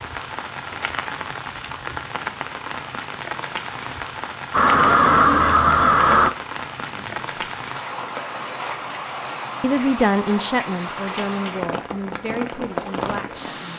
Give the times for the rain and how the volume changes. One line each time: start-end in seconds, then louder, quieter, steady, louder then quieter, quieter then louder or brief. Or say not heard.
0.0-13.7 steady.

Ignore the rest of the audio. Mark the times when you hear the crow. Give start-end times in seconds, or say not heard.
4.5-6.3.